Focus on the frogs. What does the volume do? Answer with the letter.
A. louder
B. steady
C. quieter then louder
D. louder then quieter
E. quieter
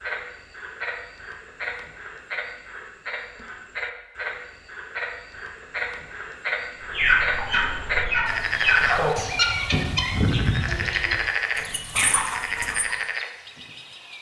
A.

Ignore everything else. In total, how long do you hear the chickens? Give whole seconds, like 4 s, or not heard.
6 s.